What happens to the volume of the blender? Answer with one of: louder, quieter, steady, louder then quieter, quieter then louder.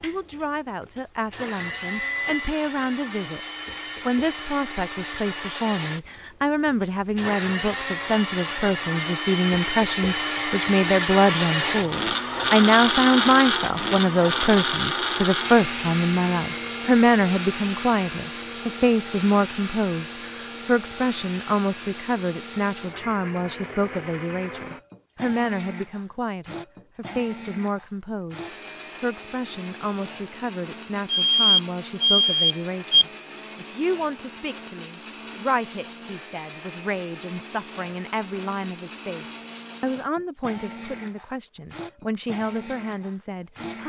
louder then quieter.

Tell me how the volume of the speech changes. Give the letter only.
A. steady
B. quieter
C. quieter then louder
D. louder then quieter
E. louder
D.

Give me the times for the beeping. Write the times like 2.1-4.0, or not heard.
1.6-2.5, 15.2-17.4, 31.1-33.0.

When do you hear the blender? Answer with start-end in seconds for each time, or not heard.
0.0-43.8.